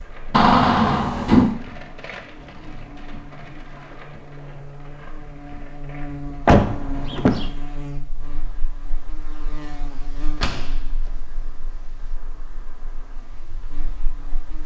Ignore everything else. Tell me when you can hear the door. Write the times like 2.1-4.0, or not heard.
0.3-1.6, 6.5-7.5, 10.3-12.2.